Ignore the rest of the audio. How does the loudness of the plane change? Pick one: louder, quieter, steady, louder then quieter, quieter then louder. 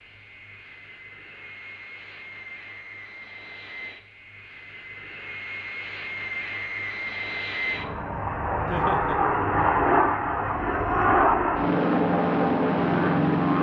louder.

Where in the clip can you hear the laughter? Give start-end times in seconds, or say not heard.
8.7-9.2.